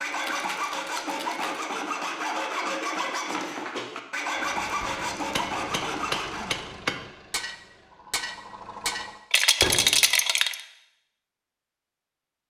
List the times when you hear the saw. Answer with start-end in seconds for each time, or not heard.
0.0-6.6.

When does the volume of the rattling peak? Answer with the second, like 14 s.
10 s.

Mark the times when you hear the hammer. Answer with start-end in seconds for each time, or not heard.
4.8-10.0.